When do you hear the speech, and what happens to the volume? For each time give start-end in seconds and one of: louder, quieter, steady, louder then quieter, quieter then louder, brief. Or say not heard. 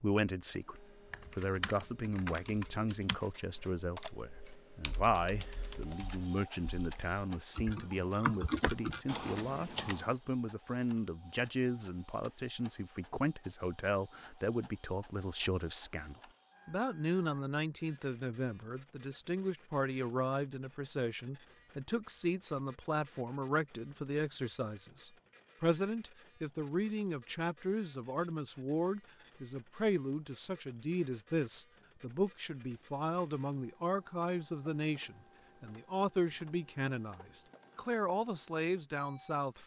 0.0-39.6 steady.